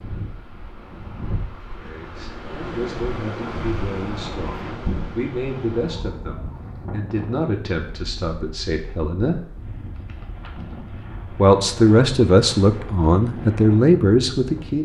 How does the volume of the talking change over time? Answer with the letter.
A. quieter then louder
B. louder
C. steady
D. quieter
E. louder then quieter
B.